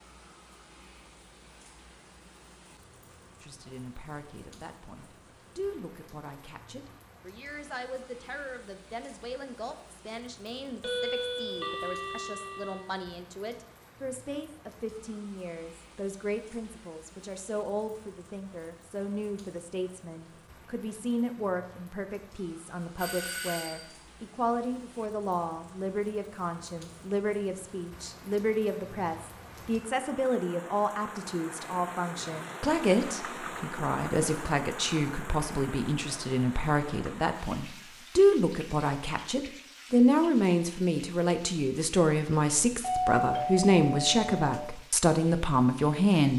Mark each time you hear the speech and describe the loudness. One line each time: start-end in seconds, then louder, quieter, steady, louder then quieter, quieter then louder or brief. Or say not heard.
3.4-46.3 louder.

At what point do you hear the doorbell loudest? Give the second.
43 s.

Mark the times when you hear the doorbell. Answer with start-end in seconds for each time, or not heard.
10.8-12.8, 22.9-23.9, 42.8-44.5.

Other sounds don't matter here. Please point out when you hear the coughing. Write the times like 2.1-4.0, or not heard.
not heard.